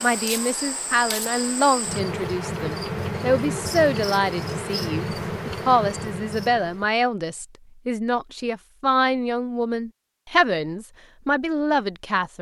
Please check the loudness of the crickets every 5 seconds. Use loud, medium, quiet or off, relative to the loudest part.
loud, loud, off.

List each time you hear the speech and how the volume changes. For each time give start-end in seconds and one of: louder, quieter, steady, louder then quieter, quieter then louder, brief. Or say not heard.
0.0-12.3 steady.